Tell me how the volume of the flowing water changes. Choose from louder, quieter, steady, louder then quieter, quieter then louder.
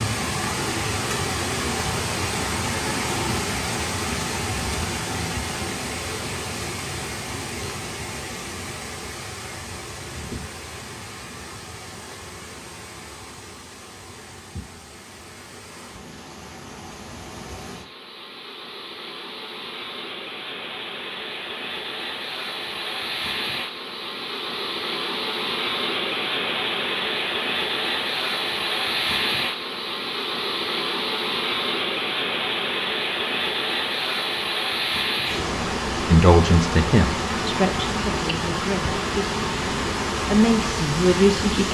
quieter then louder.